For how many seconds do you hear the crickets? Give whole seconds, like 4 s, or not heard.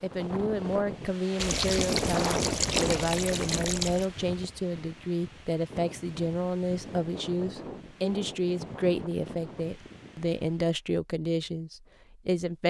not heard.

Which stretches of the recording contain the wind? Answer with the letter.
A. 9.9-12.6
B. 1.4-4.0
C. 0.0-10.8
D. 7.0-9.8
C.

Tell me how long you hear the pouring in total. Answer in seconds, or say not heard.
3 s.